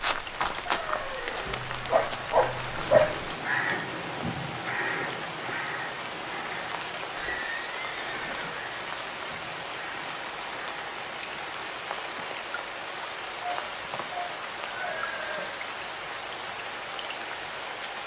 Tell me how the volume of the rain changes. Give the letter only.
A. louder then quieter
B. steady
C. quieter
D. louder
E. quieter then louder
B.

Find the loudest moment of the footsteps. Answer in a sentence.
The loudest moment of the footsteps is at 1 second.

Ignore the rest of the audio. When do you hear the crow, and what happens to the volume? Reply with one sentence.
You can hear the crow from 2.8 to 11.7 s, getting quieter.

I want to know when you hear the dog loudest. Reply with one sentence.
The volume of the dog peaks at 3 seconds.